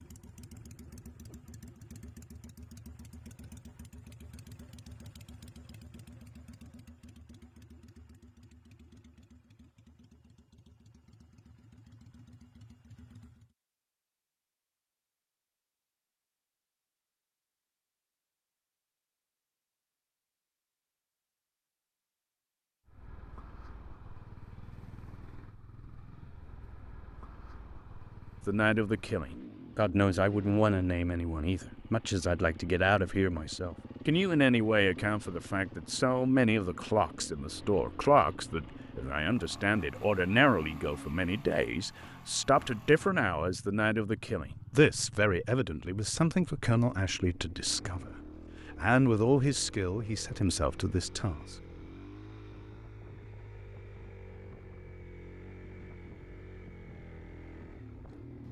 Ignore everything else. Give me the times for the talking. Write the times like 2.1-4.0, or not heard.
28.4-51.5.